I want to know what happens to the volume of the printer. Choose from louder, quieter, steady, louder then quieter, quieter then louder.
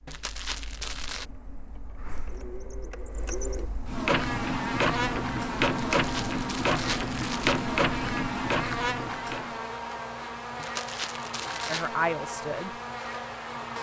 louder.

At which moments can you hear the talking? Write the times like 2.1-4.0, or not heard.
11.7-12.8.